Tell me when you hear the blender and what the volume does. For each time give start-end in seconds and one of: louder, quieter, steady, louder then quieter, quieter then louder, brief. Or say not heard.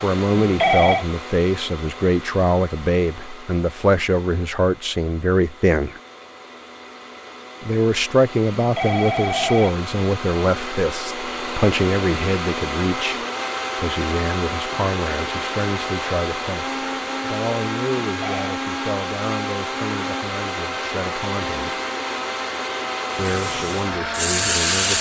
0.0-24.9 louder.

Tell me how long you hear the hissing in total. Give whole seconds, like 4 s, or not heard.
2 s.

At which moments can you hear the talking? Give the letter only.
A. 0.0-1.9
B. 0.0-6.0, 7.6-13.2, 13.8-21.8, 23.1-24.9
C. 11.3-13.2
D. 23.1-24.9
B.